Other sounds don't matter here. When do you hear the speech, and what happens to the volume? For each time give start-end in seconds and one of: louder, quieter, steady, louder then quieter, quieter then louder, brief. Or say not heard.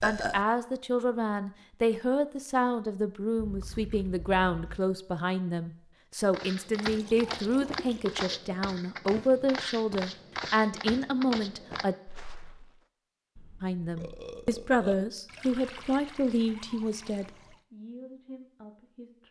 0.0-11.9 steady
13.6-19.2 quieter.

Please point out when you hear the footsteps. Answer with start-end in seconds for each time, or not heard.
6.3-12.8.